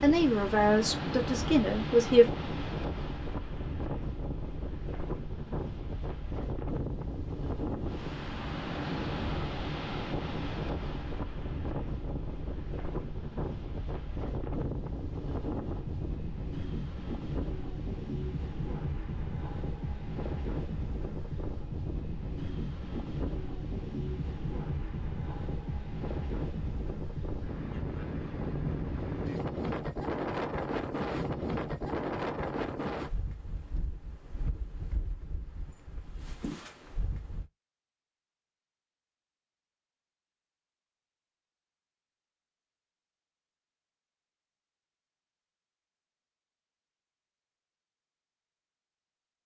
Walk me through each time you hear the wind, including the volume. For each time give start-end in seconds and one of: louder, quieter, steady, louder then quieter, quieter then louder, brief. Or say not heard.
0.0-37.5 steady.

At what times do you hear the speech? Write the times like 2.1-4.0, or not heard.
0.0-2.2.